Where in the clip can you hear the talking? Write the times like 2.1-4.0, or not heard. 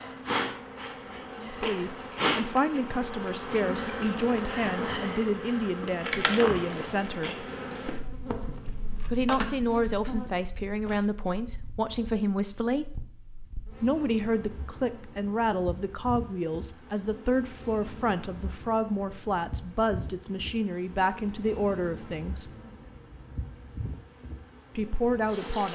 1.4-7.5, 9.1-13.0, 13.8-22.5, 24.8-25.6.